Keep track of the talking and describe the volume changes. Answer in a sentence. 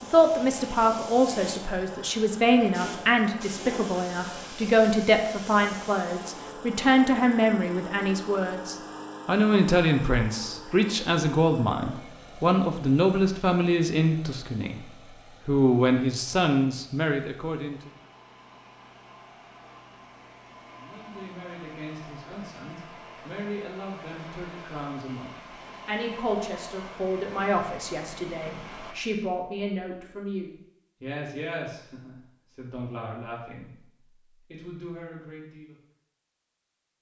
The loudness of the talking goes down.